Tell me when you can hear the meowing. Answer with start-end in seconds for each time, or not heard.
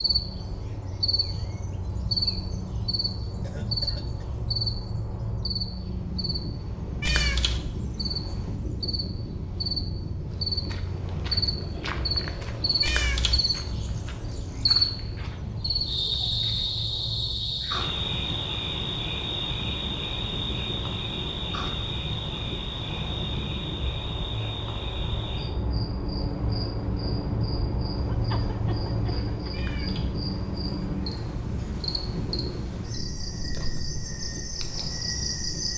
7.0-7.6, 12.8-13.4, 29.5-30.1.